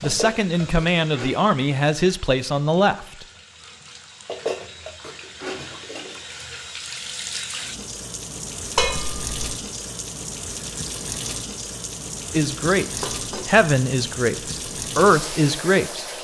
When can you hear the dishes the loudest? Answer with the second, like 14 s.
9 s.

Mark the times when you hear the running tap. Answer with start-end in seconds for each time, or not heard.
0.0-16.2.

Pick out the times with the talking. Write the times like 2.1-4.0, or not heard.
0.0-3.2, 12.3-16.1.